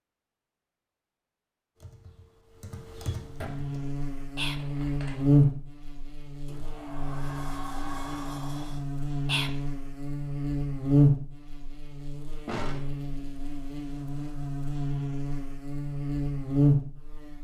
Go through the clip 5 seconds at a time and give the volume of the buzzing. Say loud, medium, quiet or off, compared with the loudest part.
medium, loud, loud, loud.